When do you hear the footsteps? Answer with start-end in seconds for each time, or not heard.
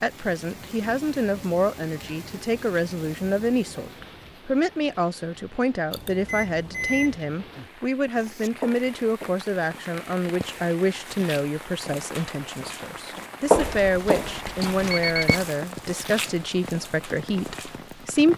8.2-17.8.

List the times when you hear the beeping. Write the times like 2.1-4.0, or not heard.
5.9-7.2, 13.6-15.4.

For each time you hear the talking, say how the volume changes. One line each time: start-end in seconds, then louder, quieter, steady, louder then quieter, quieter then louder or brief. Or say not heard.
0.0-18.3 steady.